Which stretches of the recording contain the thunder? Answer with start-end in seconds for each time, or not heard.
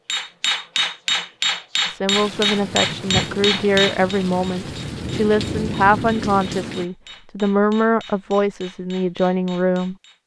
2.1-6.8.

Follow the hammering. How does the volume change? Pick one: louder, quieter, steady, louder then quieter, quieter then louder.
quieter.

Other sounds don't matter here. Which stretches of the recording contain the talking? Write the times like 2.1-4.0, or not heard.
1.9-10.2.